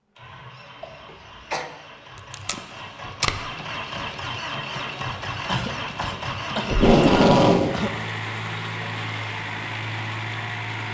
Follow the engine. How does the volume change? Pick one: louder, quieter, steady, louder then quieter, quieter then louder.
louder.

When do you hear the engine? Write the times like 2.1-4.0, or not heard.
0.1-10.8.